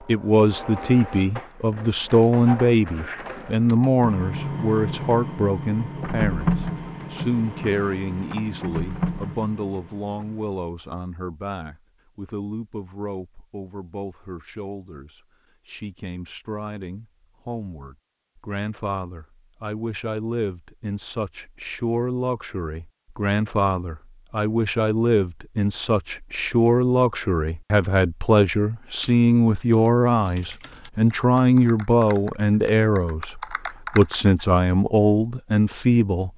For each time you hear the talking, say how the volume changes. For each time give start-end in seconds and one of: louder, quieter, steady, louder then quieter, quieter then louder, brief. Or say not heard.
0.1-36.3 quieter then louder.